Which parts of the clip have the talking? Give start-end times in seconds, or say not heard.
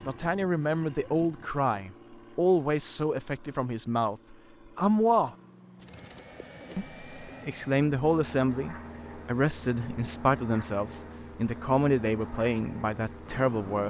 0.1-5.3, 6.8-13.8.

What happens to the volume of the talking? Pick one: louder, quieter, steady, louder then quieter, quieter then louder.
steady.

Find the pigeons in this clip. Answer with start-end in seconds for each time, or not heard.
5.8-7.5.